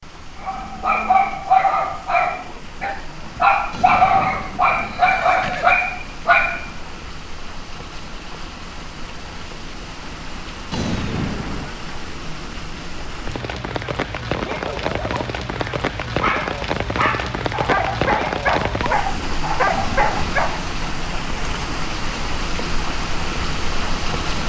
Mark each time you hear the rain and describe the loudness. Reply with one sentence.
The rain can be heard from 0.0 to 24.4 s, getting louder.